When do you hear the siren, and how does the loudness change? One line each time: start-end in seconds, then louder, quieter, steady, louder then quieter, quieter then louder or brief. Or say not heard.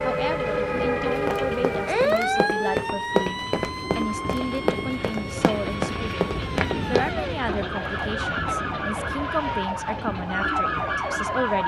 0.0-11.6 quieter then louder.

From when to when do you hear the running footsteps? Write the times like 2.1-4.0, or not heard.
1.1-7.1.